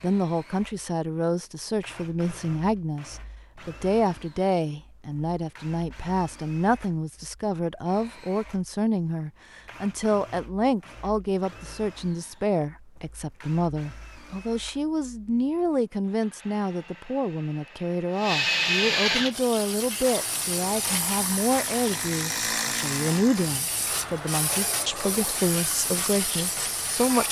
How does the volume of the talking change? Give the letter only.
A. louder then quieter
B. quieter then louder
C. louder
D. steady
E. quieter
D.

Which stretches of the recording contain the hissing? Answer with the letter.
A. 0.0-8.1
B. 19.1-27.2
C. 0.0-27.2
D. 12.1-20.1
B.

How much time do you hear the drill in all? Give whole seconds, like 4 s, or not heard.
27 s.